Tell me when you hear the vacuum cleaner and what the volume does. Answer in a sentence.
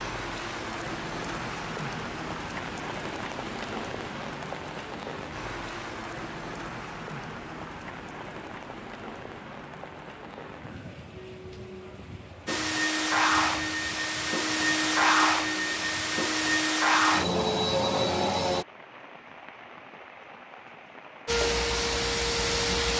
The vacuum cleaner can be heard from 12.4 to 18.6 s, at a steady volume; and briefly from 21.2 to 22.9 s.